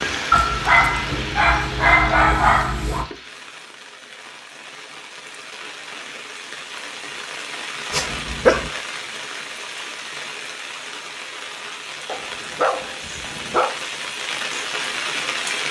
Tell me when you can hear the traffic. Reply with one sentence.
You can't hear the traffic here.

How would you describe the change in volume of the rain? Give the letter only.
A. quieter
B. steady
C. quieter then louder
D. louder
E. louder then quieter
C.